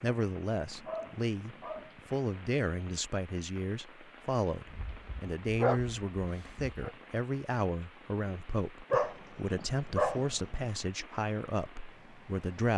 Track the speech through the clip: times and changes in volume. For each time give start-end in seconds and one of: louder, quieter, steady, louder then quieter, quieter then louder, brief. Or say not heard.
0.0-12.7 steady.